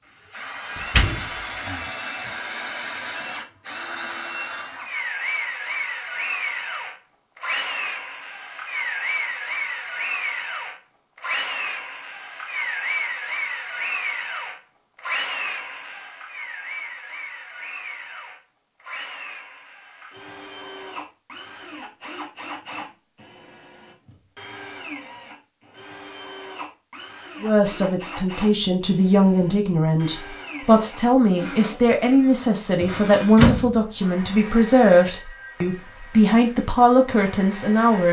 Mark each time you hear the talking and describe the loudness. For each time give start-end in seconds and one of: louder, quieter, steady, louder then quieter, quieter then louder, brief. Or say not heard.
27.4-38.0 steady.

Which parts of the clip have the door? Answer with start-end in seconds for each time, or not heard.
0.8-1.9, 32.8-33.8.